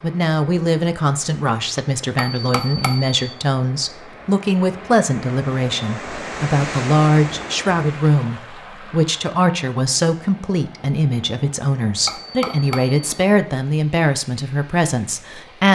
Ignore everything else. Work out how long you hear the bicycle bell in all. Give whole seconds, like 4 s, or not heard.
2 s.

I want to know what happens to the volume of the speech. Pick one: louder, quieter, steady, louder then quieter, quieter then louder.
steady.